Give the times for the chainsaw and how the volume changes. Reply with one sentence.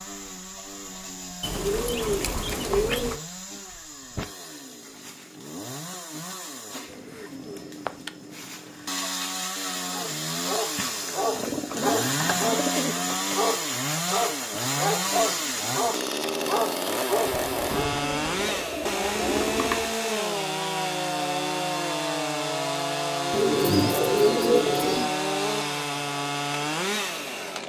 The chainsaw can be heard from 0.0 to 27.6 s, getting louder.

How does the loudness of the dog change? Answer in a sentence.
The volume of the dog stays about the same.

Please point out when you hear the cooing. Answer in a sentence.
You can hear the cooing from 1.4 to 3.2 s, from 6.9 to 8.7 s, from 11.3 to 13.3 s, from 17.2 to 19.9 s and from 23.3 to 25.1 s.